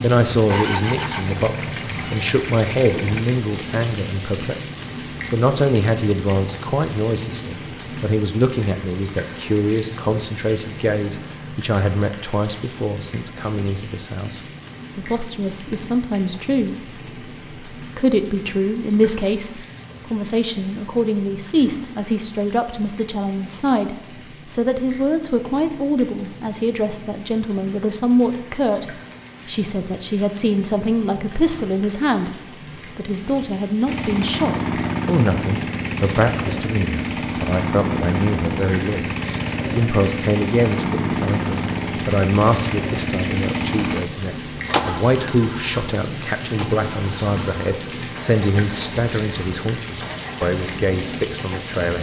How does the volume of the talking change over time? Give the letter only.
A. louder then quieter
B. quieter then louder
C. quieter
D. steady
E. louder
D.